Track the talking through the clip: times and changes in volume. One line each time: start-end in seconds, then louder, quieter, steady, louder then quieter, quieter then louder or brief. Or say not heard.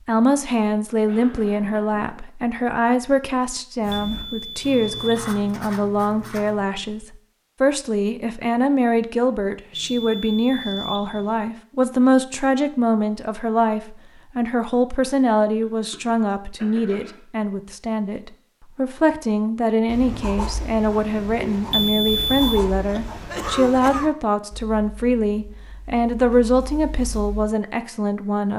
0.1-28.5 steady.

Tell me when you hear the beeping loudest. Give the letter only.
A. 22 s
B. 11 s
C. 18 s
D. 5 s
A.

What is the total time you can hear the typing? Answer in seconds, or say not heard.
not heard.